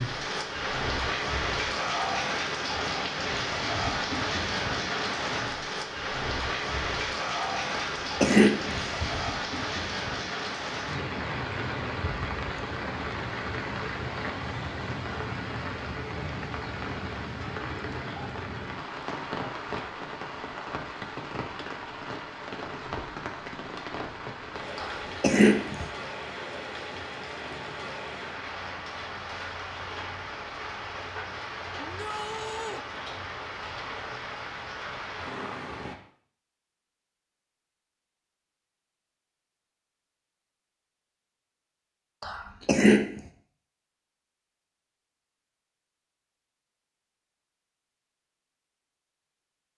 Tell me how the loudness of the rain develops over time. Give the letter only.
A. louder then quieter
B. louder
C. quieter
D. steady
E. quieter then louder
C.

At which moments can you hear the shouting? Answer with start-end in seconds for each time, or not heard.
31.8-32.9.